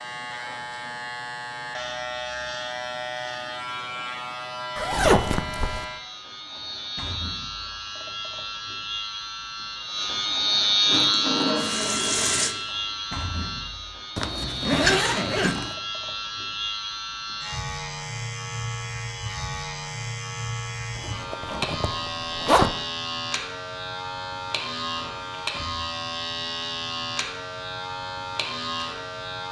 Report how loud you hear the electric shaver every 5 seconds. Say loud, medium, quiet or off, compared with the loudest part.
medium, medium, loud, medium, medium, medium.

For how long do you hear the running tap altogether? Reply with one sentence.
You can hear the running tap for 2 seconds altogether.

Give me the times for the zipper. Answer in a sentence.
You can hear the zipper from 4.8 to 5.8 s, from 14.2 to 15.8 s and from 20.9 to 22.8 s.